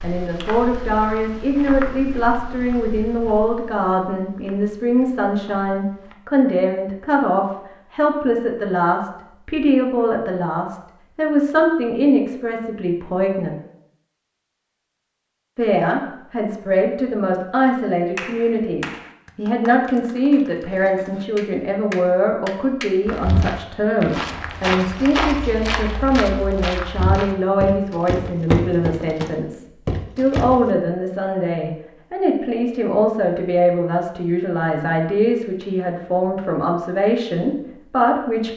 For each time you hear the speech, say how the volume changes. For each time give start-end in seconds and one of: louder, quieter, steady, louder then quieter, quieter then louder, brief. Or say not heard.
0.0-13.5 steady
15.6-38.5 steady.